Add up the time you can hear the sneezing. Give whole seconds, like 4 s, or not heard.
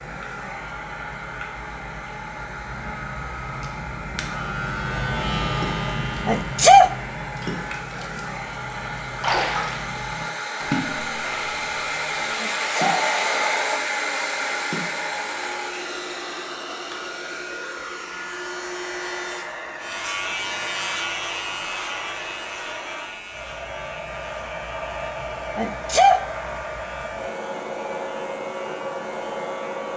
2 s.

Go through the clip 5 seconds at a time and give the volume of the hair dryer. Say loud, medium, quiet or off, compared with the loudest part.
medium, medium, loud, medium, medium, medium.